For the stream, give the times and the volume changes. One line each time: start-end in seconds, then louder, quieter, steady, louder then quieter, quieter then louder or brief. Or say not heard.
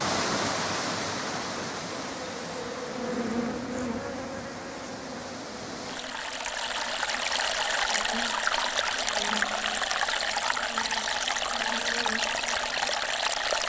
0.0-13.6 quieter then louder.